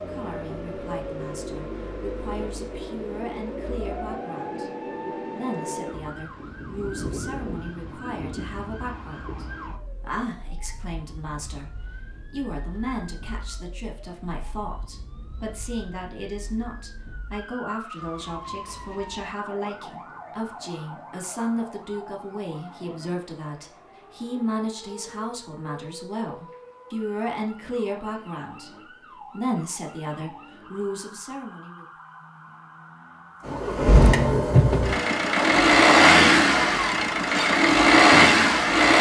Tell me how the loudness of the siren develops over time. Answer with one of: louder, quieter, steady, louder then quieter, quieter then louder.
quieter.